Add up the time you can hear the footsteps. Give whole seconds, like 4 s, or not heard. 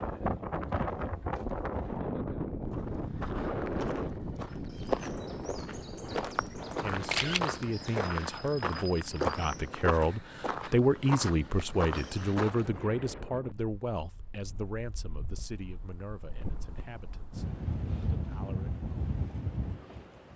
10 s.